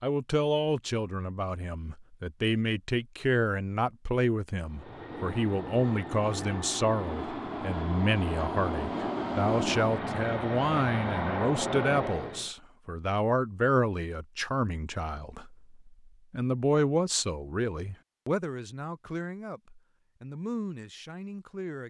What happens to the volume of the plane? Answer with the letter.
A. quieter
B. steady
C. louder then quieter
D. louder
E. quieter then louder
D.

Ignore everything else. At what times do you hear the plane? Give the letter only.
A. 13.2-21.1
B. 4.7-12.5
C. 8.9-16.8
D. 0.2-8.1
B.